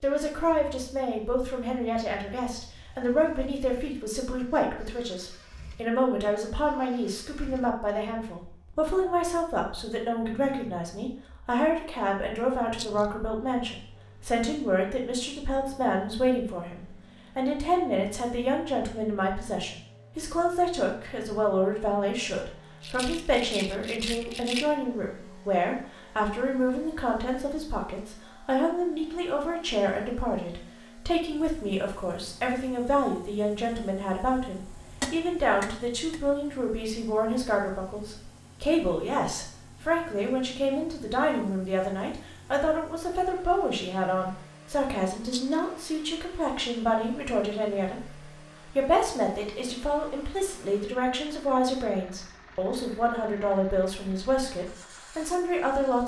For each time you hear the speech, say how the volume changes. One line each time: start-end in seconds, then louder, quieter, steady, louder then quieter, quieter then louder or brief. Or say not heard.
0.0-56.0 steady.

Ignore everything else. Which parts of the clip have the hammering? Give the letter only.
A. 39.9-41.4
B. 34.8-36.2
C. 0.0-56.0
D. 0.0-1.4
B.